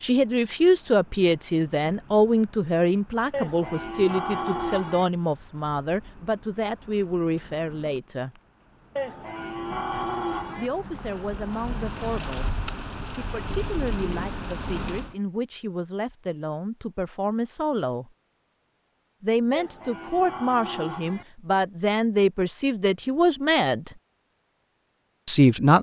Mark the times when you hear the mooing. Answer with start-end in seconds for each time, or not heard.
3.3-5.0, 8.9-10.7, 19.5-21.2.